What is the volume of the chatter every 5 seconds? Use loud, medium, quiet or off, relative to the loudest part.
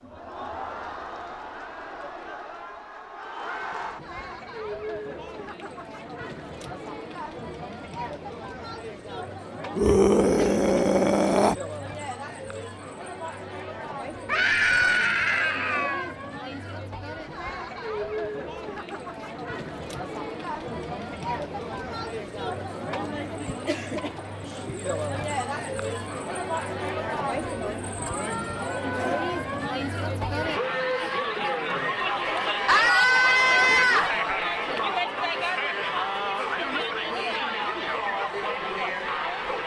medium, medium, medium, medium, medium, loud, loud, loud.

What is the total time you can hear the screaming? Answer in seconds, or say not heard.
5 s.